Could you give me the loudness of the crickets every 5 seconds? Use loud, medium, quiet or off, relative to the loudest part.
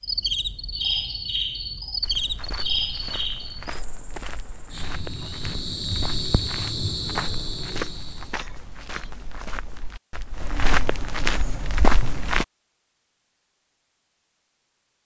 loud, loud, off.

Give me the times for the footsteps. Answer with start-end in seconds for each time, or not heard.
2.0-12.4.